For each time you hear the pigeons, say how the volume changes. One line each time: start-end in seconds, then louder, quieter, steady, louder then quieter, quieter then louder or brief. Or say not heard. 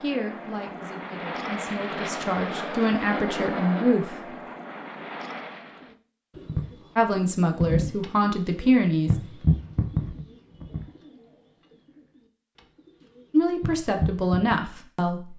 6.3-14.6 quieter then louder.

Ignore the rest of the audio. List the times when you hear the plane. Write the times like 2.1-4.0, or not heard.
0.0-6.0.